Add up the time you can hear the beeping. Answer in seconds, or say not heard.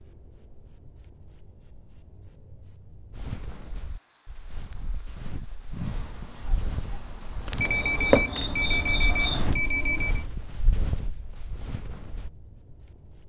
3 s.